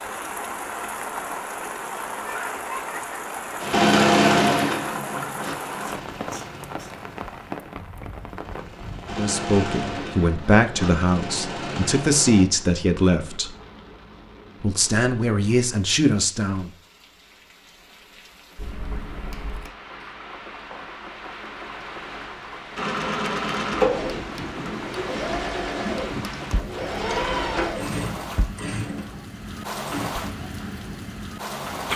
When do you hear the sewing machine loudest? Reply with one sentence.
The loudest moment of the sewing machine is at 4 seconds.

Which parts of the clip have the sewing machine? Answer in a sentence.
You can hear the sewing machine from 3.6 to 12.4 s and from 22.8 to 30.1 s.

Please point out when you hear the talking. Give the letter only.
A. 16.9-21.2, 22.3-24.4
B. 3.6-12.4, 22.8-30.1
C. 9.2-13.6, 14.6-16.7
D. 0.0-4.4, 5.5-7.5
C.